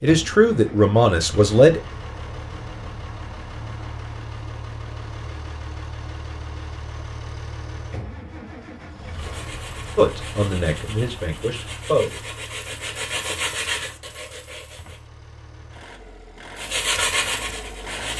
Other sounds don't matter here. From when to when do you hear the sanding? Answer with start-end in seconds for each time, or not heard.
9.1-15.1, 16.6-18.1.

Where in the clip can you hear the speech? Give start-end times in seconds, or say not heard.
0.0-1.8, 9.9-12.2.